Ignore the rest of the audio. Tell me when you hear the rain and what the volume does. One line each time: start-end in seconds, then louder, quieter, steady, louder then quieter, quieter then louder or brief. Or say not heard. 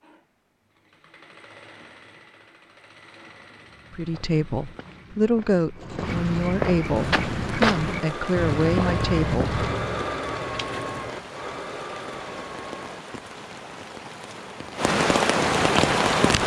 7.0-16.4 louder.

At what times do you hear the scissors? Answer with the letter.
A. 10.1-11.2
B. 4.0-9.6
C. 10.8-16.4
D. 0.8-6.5
A.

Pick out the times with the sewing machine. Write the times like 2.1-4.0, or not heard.
0.0-13.1.